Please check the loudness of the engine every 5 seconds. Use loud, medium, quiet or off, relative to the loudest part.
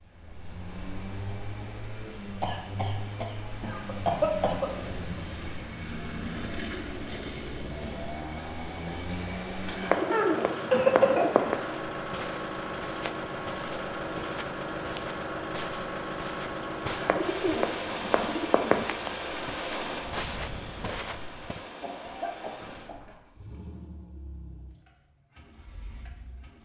medium, loud, loud, loud, medium, quiet.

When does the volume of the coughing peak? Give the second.
11 s.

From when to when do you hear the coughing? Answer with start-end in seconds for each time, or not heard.
2.4-4.9, 10.1-11.6, 21.8-23.2.